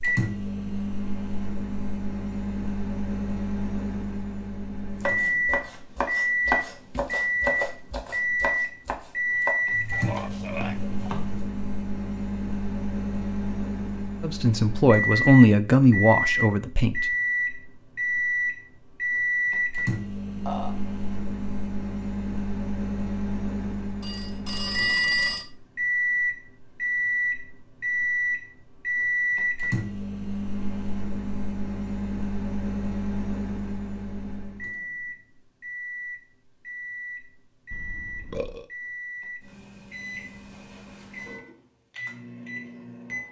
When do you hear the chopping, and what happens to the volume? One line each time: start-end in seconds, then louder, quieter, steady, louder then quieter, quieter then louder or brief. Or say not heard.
5.0-11.4 quieter.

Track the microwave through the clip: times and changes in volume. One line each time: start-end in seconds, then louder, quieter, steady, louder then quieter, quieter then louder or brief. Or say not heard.
0.0-43.2 quieter.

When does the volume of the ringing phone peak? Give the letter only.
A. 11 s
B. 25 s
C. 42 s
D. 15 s
B.